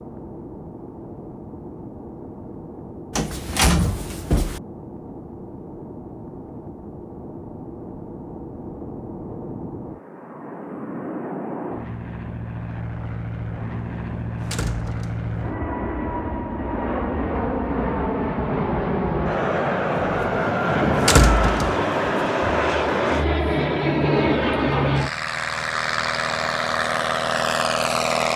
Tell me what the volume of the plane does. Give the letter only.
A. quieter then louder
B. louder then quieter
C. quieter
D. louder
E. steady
D.